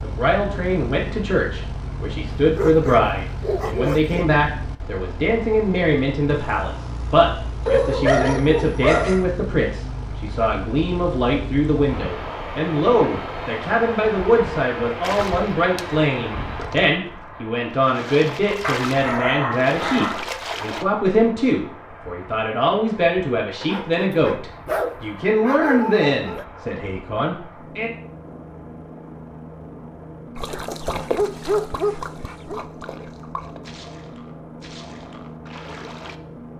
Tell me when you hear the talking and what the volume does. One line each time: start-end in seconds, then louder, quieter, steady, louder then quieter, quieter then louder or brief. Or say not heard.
0.0-27.9 steady.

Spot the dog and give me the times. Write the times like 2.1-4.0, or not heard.
2.5-4.2, 7.7-9.2, 18.6-20.2, 23.6-26.4, 30.5-32.6.